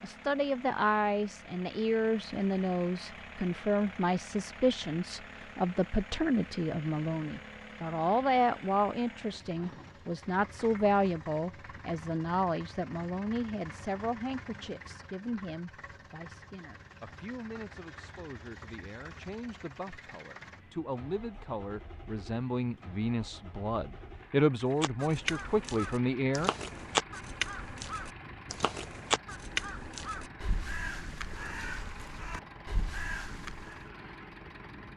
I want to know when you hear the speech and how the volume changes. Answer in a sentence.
You can hear the speech from 0.0 to 26.5 s, getting quieter then louder.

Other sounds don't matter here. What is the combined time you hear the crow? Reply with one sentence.
The crow can be heard for 9 seconds in total.